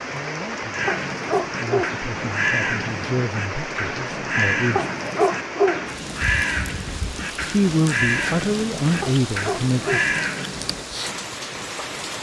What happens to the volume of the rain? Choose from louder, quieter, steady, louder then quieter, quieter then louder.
steady.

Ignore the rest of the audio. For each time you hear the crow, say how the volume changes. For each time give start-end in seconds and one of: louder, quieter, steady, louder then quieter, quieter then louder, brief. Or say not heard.
0.7-10.8 steady.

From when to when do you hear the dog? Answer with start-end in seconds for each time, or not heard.
0.8-2.0, 4.8-5.8, 9.0-10.2.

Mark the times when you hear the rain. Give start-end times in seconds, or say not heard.
0.0-12.1.